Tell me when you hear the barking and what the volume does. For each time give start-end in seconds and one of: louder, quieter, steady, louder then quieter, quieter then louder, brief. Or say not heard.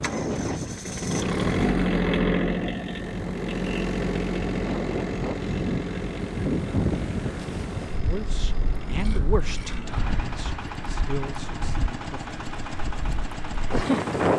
not heard.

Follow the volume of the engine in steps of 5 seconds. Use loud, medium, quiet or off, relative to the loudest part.
loud, medium, medium.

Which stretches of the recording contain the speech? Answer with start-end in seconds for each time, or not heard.
7.9-12.3.